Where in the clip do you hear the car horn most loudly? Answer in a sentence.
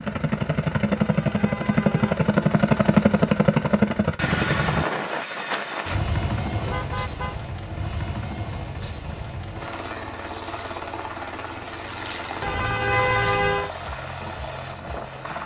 The loudest moment of the car horn is at 13 seconds.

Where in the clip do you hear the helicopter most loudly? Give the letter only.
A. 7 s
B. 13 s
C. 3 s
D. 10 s
C.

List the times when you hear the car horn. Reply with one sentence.
The car horn can be heard from 0.9 to 2.2 s, from 6.5 to 7.3 s and from 12.4 to 13.7 s.